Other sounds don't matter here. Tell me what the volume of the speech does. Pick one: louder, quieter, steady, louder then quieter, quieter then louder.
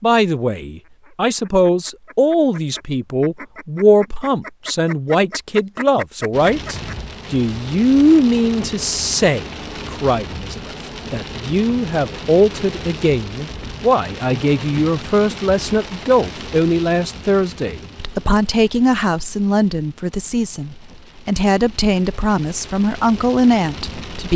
steady.